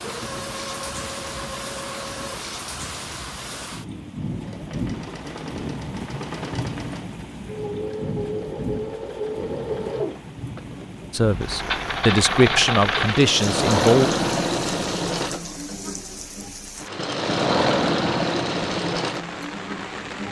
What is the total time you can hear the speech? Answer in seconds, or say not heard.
3 s.